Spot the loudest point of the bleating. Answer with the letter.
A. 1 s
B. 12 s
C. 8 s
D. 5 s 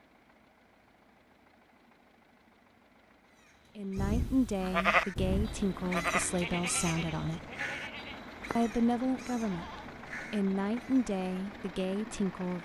D.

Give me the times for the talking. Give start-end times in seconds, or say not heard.
3.8-7.5, 8.6-12.6.